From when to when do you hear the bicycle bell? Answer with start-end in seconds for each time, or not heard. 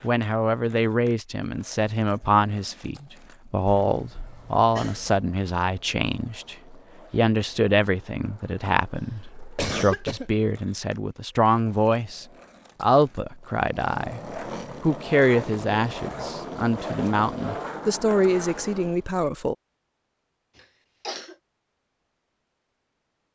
not heard.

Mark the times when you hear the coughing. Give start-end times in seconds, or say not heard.
3.6-5.2, 8.9-10.3, 20.6-21.4.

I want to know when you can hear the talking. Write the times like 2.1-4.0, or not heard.
0.0-19.6.